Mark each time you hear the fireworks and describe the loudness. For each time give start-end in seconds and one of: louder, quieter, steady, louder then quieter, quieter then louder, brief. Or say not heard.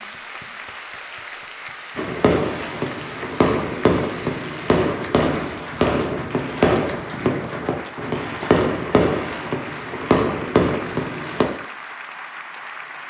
1.9-11.4 steady.